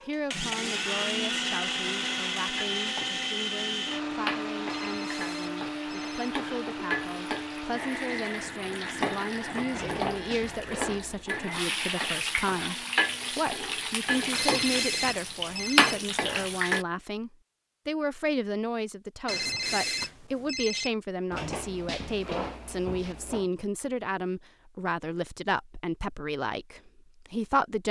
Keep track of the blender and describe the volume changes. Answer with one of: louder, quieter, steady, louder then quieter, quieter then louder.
quieter.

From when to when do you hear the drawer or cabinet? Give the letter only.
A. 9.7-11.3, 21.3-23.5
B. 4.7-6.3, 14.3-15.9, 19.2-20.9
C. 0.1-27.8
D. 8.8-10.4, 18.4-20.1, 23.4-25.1
A.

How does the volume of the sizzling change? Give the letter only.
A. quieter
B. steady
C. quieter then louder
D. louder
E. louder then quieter
D.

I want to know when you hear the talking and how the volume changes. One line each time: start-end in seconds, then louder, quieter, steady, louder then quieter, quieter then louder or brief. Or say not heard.
0.1-27.8 louder.